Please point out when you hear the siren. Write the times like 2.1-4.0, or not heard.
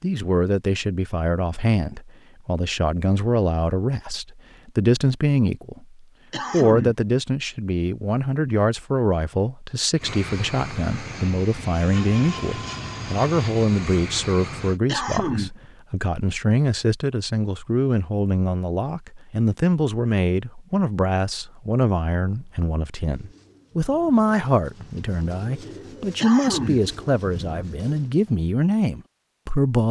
not heard.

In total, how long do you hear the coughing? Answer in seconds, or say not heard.
2 s.